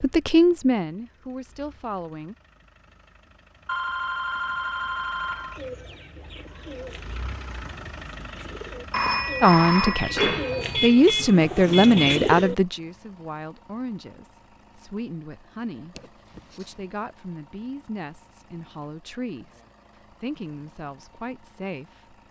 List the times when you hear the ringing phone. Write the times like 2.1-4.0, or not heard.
3.6-5.6, 8.9-10.9, 15.9-16.6.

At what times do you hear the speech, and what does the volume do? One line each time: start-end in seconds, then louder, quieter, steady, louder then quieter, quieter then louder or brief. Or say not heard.
0.0-2.4 brief
9.4-22.1 quieter.